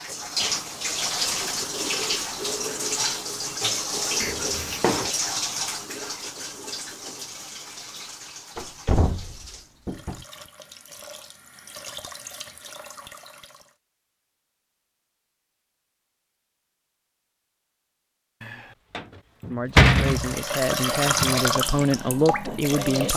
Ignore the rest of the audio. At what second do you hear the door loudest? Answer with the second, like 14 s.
20 s.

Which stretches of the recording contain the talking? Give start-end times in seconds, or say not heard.
19.4-23.1.